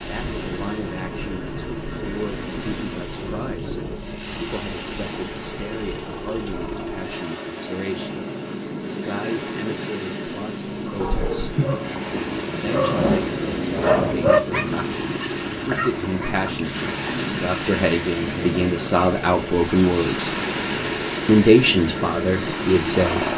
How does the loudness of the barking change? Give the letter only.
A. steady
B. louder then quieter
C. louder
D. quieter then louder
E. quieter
B.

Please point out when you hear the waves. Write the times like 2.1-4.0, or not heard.
0.0-23.3.